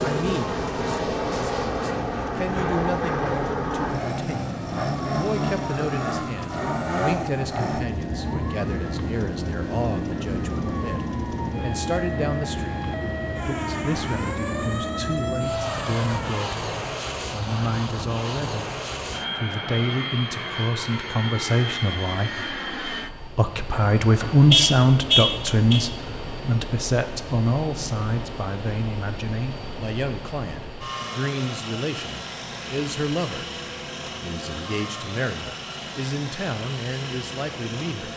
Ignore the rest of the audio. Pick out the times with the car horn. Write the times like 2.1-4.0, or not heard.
23.7-25.8.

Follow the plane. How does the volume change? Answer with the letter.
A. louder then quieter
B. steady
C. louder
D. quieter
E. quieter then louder
D.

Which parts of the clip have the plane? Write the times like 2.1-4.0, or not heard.
0.0-38.1.